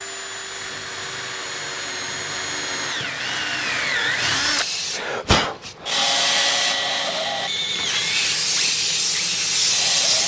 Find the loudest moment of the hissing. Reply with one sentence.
The volume of the hissing peaks at 10 seconds.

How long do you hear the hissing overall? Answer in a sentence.
You can hear the hissing for 6 seconds altogether.